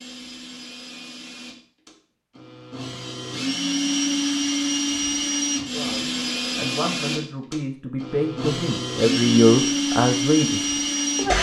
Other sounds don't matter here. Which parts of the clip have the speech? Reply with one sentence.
You can hear the speech from 5.7 to 11.3 s.